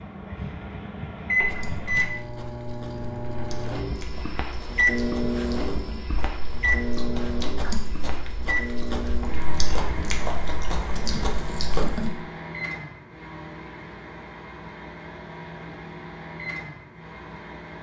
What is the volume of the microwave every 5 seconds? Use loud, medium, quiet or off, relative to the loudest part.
loud, loud, medium, medium.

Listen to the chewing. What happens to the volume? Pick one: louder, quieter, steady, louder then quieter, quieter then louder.
louder.